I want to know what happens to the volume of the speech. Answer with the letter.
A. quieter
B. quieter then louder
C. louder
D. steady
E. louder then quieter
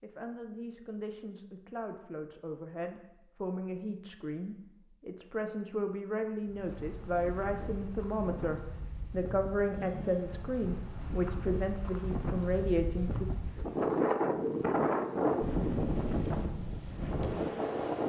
C.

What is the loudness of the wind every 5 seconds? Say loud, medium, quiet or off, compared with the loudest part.
off, quiet, loud, loud.